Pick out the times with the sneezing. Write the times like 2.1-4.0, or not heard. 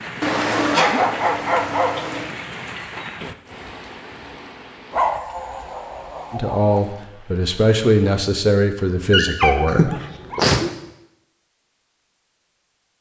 0.7-1.1, 9.7-10.7.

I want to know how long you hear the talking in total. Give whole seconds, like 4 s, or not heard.
4 s.